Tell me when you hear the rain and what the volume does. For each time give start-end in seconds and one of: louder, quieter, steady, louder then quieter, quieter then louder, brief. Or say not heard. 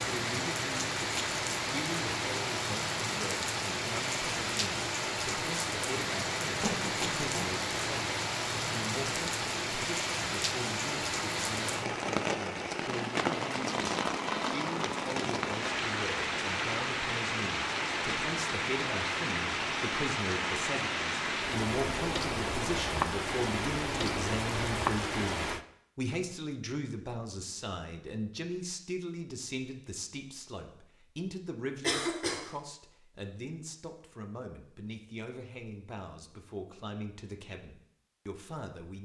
0.0-25.6 steady.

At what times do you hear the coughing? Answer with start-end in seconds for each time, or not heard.
6.6-7.5, 31.8-32.4.